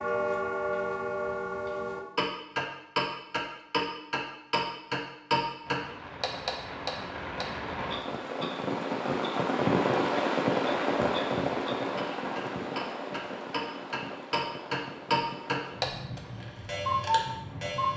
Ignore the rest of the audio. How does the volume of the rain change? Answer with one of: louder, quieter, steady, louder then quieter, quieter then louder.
louder then quieter.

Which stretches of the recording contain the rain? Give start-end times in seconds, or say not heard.
5.7-17.9.